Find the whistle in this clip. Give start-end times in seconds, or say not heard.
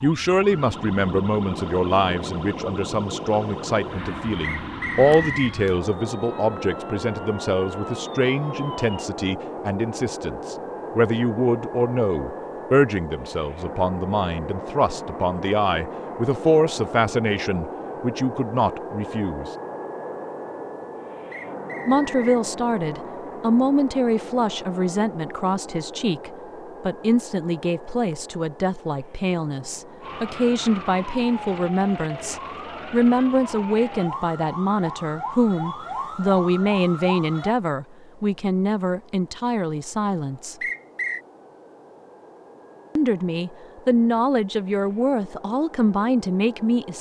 4.4-5.5, 21.3-22.4, 40.6-41.2.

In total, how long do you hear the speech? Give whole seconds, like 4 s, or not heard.
42 s.